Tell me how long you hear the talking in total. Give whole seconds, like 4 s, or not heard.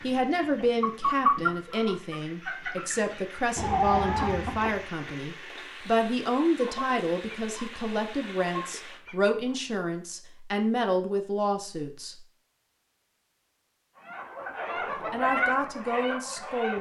14 s.